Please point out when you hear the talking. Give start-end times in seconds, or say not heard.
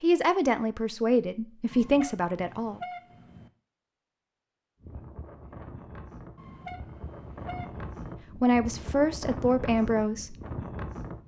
0.0-2.8, 8.3-10.3.